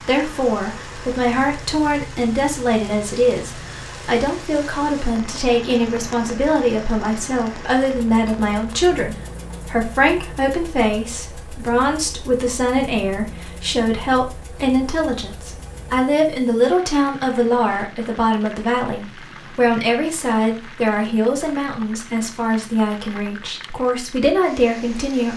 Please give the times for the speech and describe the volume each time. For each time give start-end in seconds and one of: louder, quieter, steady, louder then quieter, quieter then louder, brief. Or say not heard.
0.0-25.3 steady.